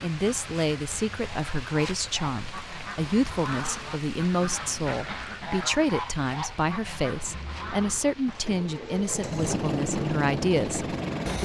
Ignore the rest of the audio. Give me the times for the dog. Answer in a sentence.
The dog can't be heard in this clip.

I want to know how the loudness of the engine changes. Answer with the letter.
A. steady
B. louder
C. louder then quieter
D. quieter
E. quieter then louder
B.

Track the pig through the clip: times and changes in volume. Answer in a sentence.
The pig can't be heard in this clip.